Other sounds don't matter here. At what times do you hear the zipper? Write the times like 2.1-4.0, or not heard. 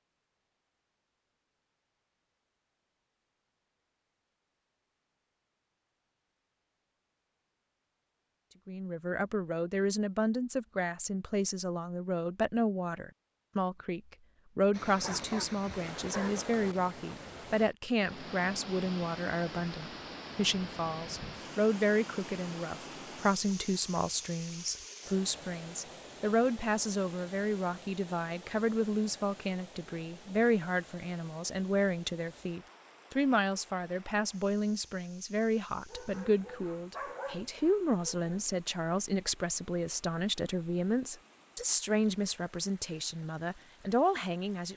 not heard.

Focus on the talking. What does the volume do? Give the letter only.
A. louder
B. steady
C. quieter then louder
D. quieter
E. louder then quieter
B.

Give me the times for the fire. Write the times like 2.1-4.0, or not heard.
not heard.